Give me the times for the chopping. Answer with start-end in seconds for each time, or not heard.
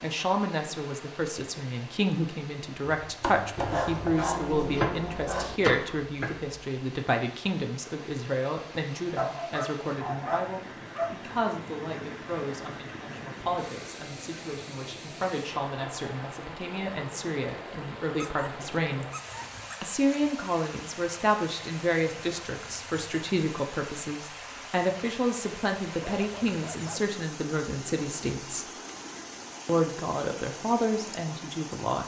3.1-6.6.